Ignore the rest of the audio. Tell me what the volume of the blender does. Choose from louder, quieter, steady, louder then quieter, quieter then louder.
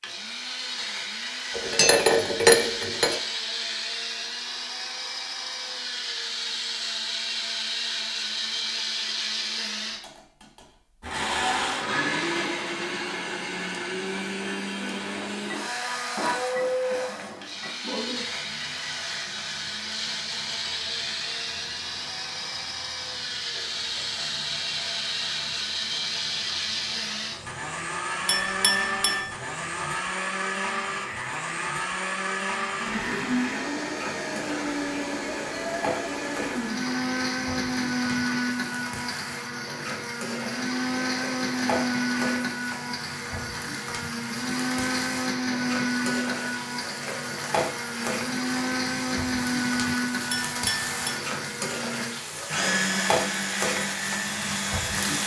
steady.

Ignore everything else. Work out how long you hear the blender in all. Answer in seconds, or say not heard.
55 s.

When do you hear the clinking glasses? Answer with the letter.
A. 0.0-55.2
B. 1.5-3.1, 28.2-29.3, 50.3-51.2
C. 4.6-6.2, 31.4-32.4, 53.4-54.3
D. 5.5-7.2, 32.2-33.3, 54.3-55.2
B.